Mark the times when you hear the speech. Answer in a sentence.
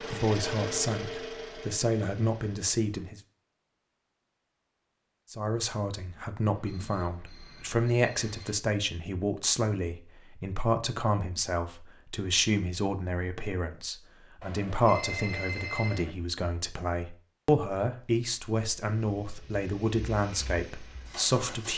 You can hear the speech from 0.0 to 3.2 s and from 5.3 to 21.7 s.